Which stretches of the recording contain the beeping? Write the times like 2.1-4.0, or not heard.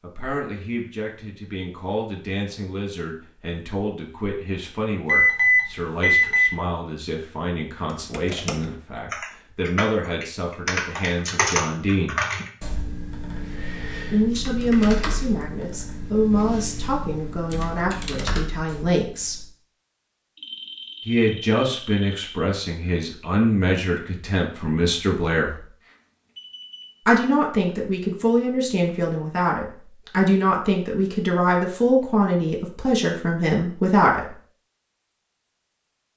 5.0-6.5, 20.4-22.4, 25.8-26.9.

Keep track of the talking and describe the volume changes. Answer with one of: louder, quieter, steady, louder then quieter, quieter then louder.
louder.